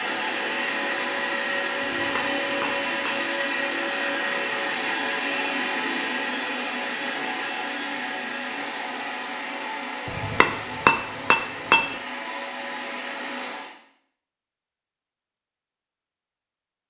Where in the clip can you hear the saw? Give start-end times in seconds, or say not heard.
not heard.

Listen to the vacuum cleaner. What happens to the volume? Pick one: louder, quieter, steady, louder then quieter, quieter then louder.
quieter.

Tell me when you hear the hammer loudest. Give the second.
11 s.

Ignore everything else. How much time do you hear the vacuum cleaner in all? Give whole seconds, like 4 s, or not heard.
14 s.